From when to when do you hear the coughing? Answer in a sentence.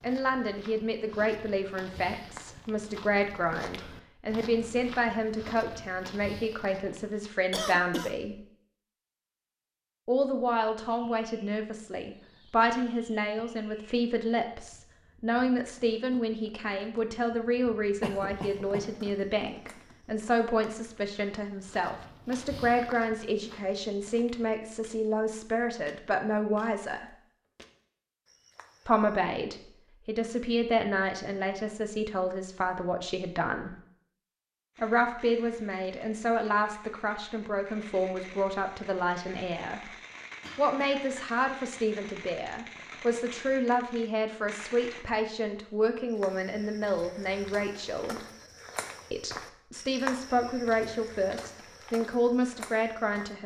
The coughing can be heard from 7.5 to 8.2 s, from 18.0 to 18.9 s and from 40.4 to 41.3 s.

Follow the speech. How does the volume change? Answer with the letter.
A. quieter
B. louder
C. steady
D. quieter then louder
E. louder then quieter
C.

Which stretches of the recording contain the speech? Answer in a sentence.
You can hear the speech from 0.0 to 8.4 s, from 10.1 to 27.1 s, from 28.9 to 33.8 s, from 34.8 to 39.9 s, from 40.5 to 48.2 s and from 49.1 to 53.4 s.